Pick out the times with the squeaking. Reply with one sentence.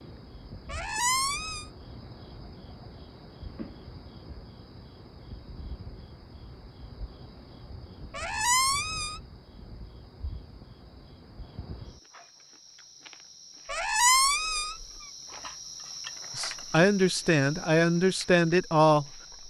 You can hear the squeaking from 0.7 to 1.6 s, from 8.1 to 9.2 s and from 13.7 to 14.8 s.